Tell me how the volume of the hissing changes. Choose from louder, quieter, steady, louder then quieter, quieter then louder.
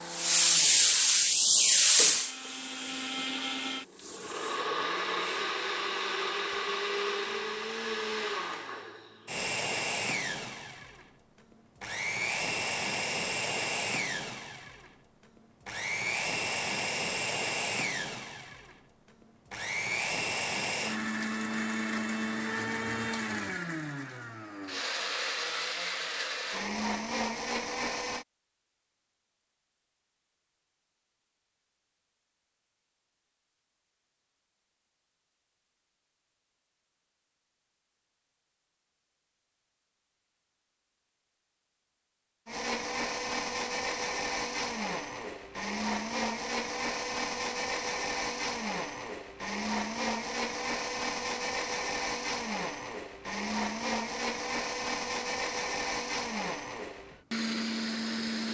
quieter.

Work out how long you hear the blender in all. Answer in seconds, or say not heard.
44 s.